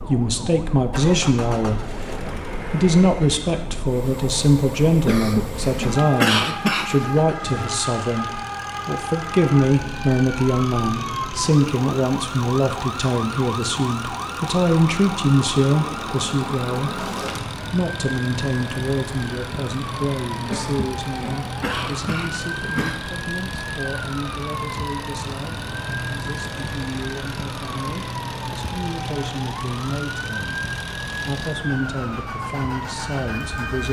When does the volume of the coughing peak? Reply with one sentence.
The loudest moment of the coughing is at 6 seconds.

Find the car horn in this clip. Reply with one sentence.
You can't hear the car horn here.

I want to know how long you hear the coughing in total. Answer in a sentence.
The coughing can be heard for 5 seconds in total.